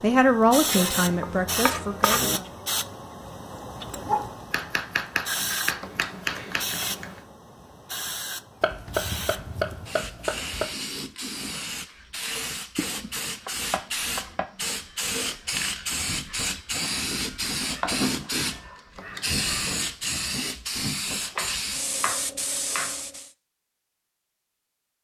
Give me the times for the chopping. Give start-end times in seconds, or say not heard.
0.8-2.4, 4.5-6.7, 8.6-10.7, 12.8-14.4, 17.8-18.6, 21.2-23.0.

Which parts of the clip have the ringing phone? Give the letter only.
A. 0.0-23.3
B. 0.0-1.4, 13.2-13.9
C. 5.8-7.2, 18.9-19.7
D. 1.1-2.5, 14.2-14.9
C.